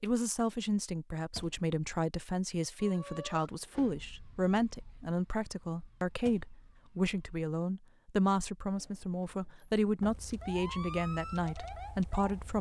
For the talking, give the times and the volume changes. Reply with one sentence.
The talking can be heard from 0.0 to 12.5 s, at a steady volume.